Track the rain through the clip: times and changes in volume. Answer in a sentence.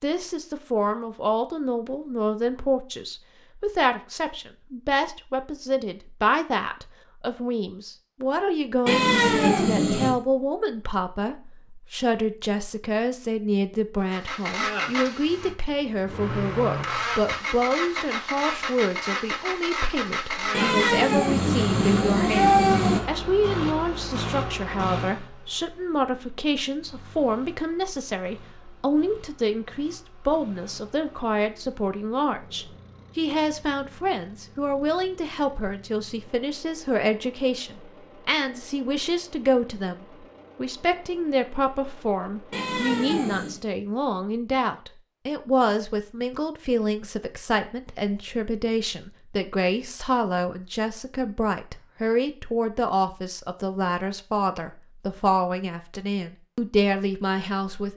You can't hear the rain here.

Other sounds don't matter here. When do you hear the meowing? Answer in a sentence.
You can hear the meowing from 8.8 to 10.2 s, from 20.5 to 23.0 s and from 42.5 to 43.6 s.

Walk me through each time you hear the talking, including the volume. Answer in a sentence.
You can hear the talking from 0.0 to 57.9 s, at a steady volume.